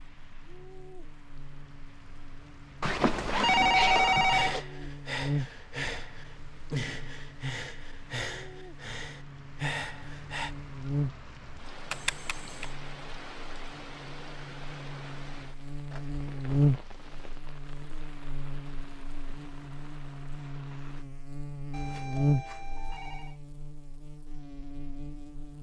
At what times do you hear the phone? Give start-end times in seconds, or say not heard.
2.8-4.7, 11.9-12.7, 21.7-23.4.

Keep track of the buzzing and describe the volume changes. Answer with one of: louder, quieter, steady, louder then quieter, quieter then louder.
louder.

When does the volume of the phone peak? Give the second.
4 s.